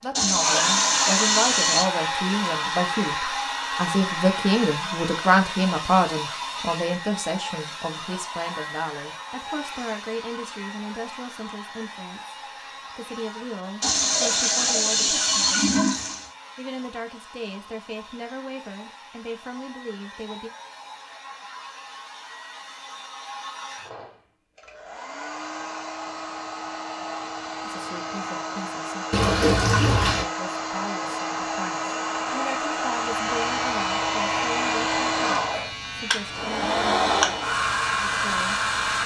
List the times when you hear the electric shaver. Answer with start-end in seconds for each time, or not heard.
32.9-39.0.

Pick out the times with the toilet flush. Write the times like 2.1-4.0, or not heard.
0.1-1.9, 13.8-16.3, 29.1-30.2.